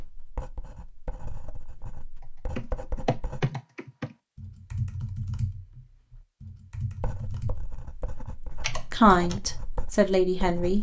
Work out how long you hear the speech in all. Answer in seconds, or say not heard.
2 s.